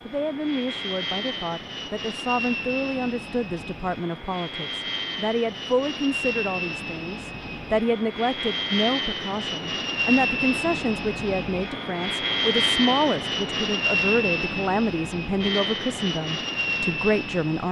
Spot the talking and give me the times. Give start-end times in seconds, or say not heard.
0.1-17.6.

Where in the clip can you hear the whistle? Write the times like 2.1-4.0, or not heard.
not heard.